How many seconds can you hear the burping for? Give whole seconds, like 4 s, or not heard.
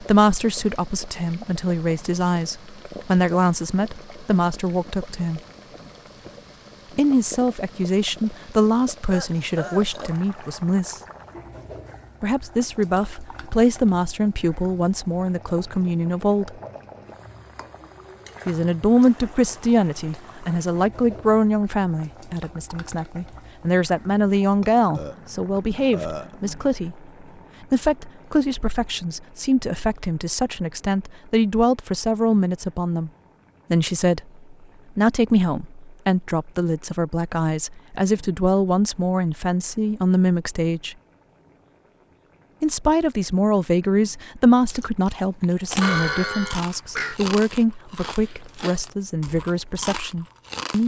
4 s.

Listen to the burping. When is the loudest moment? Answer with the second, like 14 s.
46 s.